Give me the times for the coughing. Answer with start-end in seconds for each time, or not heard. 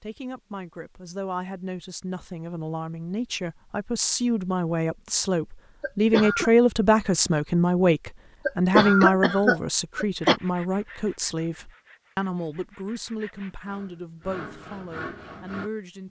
5.8-6.5, 8.4-10.4.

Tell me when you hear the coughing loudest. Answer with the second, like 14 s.
9 s.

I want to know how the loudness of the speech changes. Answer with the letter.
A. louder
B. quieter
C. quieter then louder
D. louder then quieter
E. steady
D.